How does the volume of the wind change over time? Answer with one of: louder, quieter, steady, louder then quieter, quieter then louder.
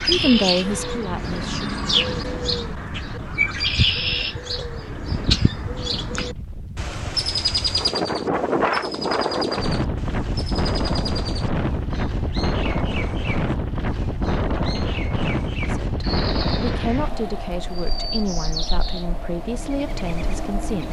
louder then quieter.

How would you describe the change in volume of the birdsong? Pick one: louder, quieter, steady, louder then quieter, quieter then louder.
quieter.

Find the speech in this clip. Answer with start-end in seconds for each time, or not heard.
0.1-1.7, 15.6-20.8.